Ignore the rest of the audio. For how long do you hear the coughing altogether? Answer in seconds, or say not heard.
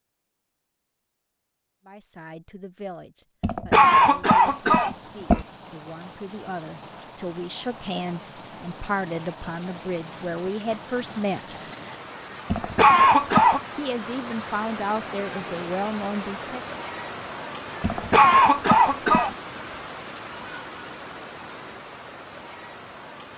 5 s.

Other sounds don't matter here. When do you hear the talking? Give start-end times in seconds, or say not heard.
1.9-11.6, 13.8-16.6.